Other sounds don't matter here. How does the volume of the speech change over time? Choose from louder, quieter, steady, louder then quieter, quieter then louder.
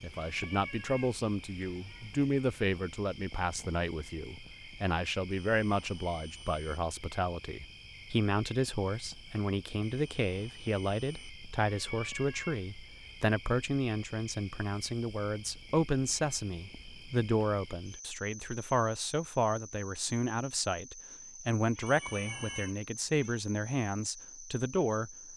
steady.